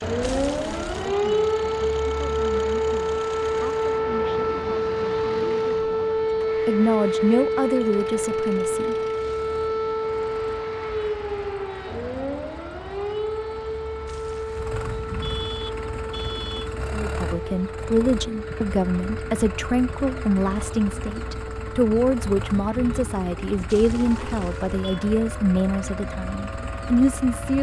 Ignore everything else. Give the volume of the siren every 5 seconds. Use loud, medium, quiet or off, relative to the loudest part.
loud, loud, medium, medium, quiet, quiet.